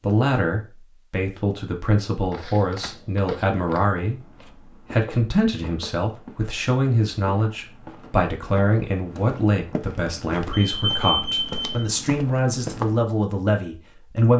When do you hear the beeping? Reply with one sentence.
The beeping can be heard from 10.7 to 11.8 s.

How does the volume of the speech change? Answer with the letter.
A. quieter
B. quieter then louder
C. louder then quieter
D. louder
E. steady
E.